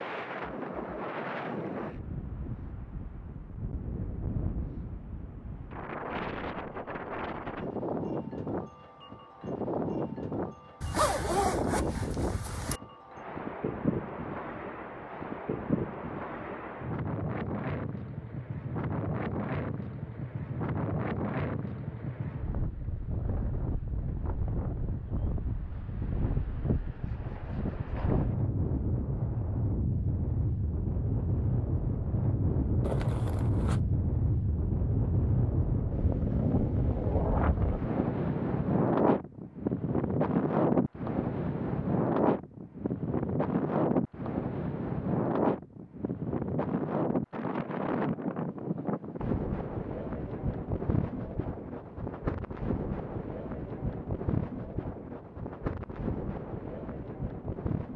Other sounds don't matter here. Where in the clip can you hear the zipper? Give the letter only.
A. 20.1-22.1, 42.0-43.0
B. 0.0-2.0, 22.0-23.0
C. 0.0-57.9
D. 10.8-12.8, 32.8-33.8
D.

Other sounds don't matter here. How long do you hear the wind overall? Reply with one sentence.
You can hear the wind for 58 seconds altogether.